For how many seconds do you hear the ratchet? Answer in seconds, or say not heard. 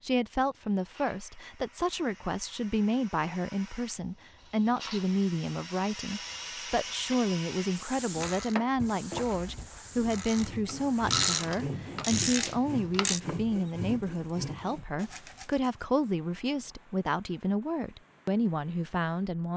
5 s.